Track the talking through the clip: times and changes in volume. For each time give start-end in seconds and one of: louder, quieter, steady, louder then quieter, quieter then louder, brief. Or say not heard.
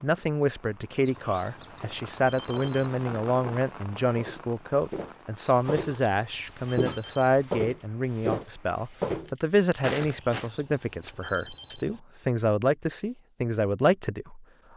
0.0-14.7 steady.